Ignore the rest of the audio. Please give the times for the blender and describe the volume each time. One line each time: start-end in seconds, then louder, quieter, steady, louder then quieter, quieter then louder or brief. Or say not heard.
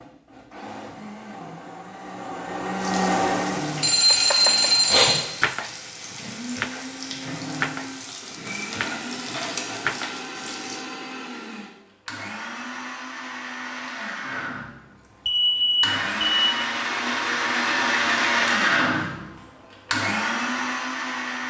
0.0-4.9 louder then quieter
7.3-21.4 louder.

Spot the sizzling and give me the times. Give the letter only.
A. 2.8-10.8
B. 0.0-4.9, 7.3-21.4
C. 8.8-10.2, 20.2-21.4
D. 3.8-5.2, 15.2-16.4
A.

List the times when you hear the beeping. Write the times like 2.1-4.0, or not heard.
3.8-5.2, 15.2-16.4.